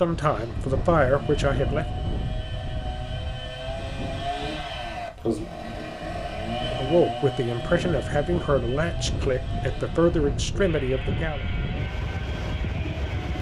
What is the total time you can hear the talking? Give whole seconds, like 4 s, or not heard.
7 s.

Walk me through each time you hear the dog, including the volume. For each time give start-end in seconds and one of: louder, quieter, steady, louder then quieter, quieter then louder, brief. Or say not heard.
not heard.